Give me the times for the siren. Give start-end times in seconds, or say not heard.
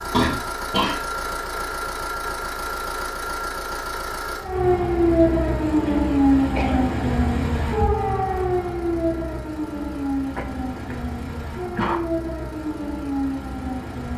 4.3-14.1.